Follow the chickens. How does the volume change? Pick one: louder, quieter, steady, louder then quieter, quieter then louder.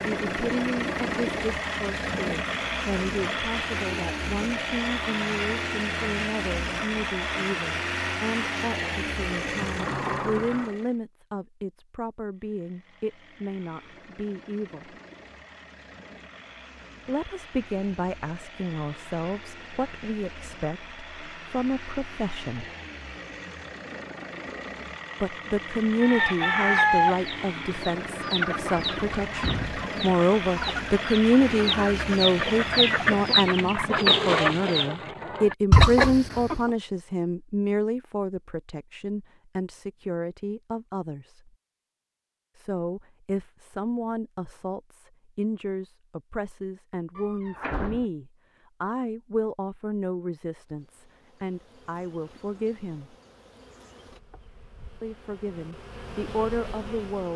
quieter then louder.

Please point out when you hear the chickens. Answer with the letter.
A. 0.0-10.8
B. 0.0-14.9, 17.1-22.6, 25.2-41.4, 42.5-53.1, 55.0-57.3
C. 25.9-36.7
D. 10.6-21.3
C.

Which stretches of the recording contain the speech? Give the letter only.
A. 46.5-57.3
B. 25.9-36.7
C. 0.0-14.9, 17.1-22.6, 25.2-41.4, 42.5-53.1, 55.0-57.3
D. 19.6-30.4
C.